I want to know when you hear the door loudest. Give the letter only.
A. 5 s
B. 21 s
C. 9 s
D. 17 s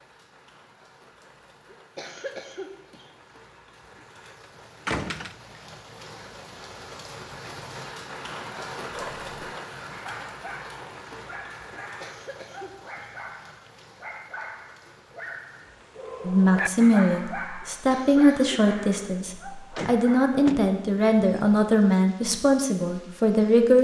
A.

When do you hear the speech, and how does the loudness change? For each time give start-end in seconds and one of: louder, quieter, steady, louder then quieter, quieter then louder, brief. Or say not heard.
16.2-23.7 steady.